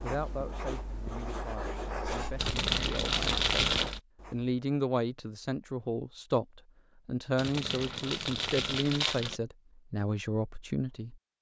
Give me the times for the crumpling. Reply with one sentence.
The crumpling can be heard from 2.4 to 4.0 s and from 7.3 to 9.4 s.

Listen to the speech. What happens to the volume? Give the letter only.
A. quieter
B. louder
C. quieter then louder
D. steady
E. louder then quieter
B.